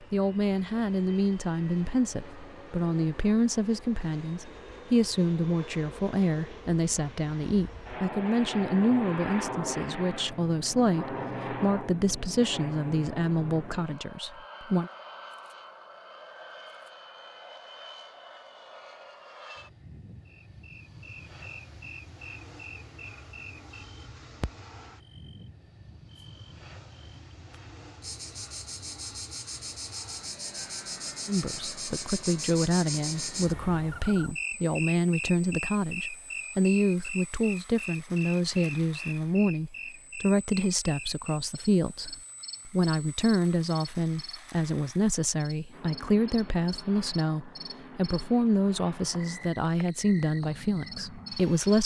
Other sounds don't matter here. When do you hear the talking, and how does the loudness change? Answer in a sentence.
You can hear the talking from 0.0 to 14.9 s, at a steady volume; and from 31.2 to 51.8 s, at a steady volume.